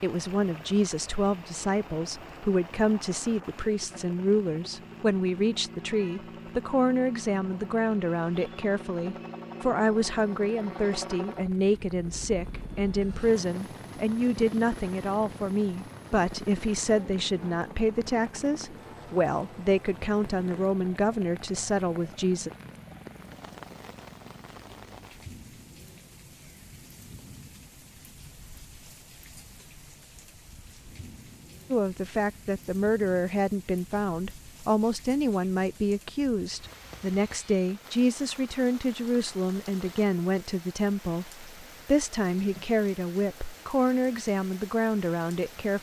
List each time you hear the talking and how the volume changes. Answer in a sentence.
The talking can be heard from 0.0 to 22.5 s, at a steady volume; and from 31.7 to 45.7 s, at a steady volume.